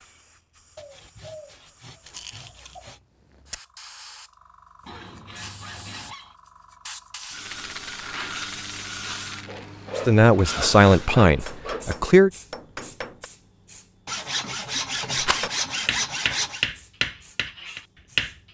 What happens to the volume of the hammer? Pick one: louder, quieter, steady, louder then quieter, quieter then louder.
louder.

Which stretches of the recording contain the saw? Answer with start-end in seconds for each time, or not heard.
0.8-3.0, 4.8-6.3, 9.4-12.0, 14.1-16.6.